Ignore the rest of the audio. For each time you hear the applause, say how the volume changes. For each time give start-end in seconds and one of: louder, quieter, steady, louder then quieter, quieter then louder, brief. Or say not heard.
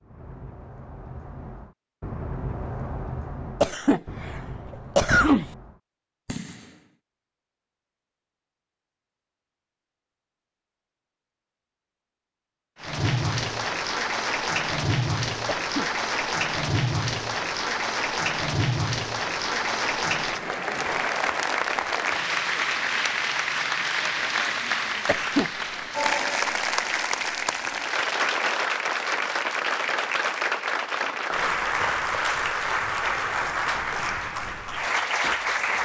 12.8-35.7 steady.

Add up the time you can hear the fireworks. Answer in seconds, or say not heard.
7 s.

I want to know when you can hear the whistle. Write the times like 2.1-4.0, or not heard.
not heard.